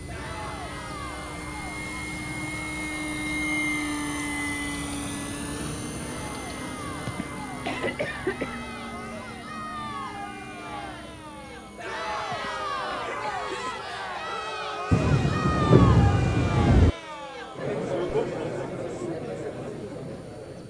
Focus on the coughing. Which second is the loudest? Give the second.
8 s.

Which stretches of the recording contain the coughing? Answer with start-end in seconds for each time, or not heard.
7.0-8.6, 12.3-13.8.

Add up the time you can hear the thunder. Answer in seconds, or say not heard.
2 s.